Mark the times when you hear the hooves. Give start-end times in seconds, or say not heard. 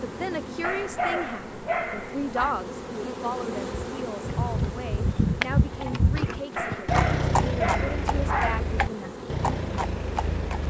4.2-10.6.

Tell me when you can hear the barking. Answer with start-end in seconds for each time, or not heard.
0.6-2.5, 6.5-8.6.